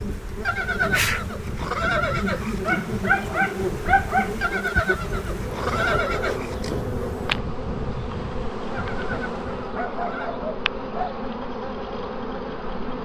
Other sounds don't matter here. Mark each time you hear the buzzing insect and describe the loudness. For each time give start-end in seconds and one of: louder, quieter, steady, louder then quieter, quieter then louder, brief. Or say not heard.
0.0-13.0 steady.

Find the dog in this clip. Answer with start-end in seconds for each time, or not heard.
2.6-4.3, 9.6-11.2.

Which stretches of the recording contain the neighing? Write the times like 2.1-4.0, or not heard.
0.5-2.8, 4.4-6.8, 8.7-10.3.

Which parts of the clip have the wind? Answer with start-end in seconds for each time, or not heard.
0.0-9.8.